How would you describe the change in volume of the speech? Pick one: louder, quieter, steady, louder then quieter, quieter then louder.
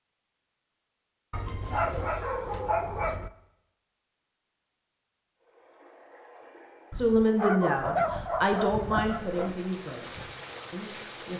quieter.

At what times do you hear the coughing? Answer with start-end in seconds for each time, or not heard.
not heard.